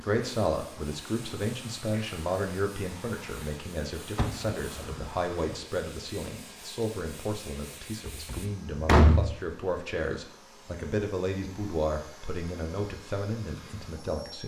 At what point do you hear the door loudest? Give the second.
9 s.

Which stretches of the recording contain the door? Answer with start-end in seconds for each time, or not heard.
4.2-5.5, 8.1-9.3.